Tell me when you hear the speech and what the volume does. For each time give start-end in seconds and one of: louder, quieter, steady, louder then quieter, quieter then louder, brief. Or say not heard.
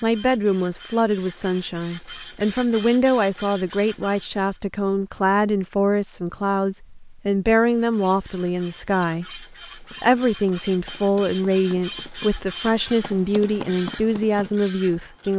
0.0-15.3 steady.